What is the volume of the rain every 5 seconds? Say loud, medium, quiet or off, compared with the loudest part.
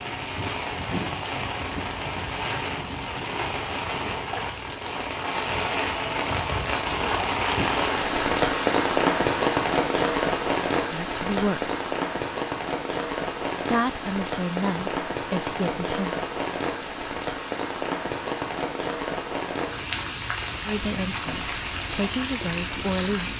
medium, loud, loud, medium, medium.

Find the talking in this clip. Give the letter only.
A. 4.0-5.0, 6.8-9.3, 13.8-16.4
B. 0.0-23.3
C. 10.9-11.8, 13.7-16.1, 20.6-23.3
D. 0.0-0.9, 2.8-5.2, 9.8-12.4
C.